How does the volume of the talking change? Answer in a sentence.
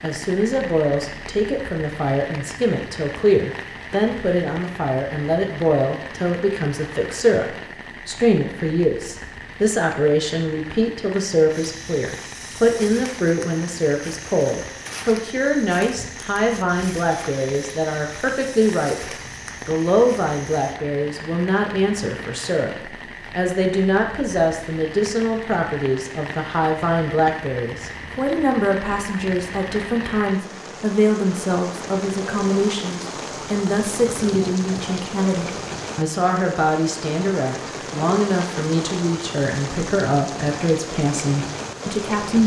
The volume of the talking stays about the same.